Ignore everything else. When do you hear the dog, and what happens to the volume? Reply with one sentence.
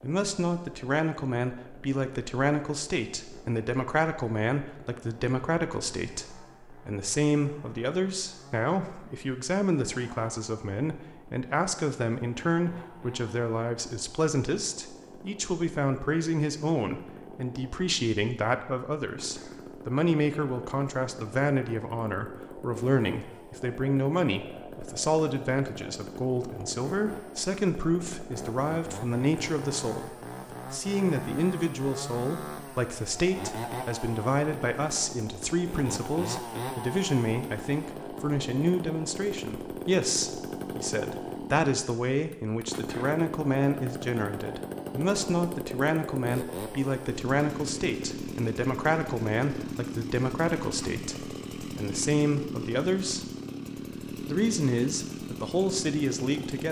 You can't hear the dog here.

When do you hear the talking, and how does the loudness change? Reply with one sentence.
The talking can be heard from 0.0 to 53.4 s, at a steady volume; and briefly from 54.1 to 56.6 s.